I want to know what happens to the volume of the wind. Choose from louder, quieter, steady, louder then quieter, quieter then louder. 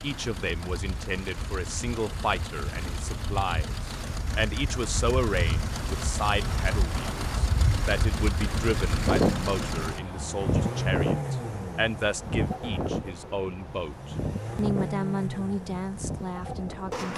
louder then quieter.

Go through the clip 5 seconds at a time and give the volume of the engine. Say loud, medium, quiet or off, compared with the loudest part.
medium, loud, loud, loud.